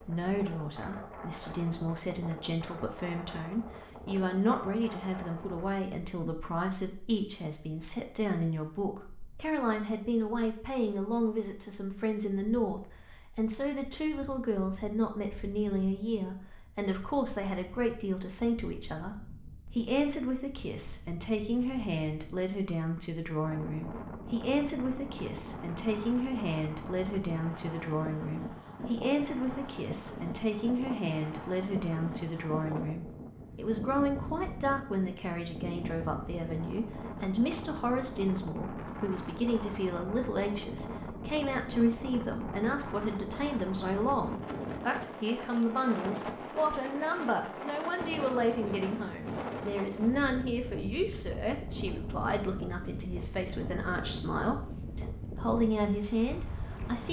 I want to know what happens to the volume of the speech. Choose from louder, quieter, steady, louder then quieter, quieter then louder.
steady.